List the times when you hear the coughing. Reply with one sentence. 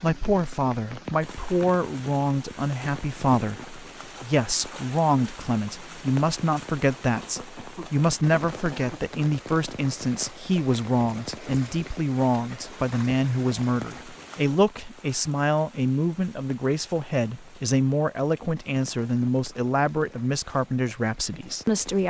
The coughing can be heard from 7.2 to 9.0 s.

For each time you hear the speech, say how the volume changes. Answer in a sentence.
The speech can be heard from 0.0 to 22.0 s, at a steady volume.